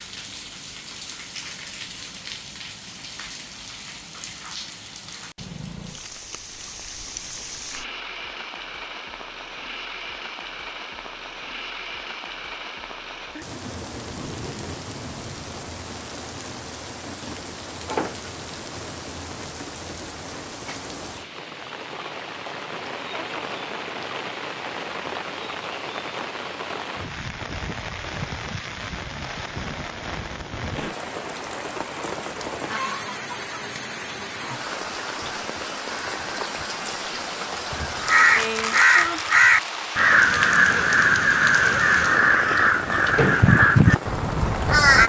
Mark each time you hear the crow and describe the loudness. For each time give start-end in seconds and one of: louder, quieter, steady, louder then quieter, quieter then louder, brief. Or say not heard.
38.0-45.0 steady.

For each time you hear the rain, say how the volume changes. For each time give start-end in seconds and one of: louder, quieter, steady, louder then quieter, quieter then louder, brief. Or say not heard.
0.0-45.0 louder.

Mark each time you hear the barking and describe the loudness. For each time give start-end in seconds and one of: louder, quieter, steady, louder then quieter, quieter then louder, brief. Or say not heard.
not heard.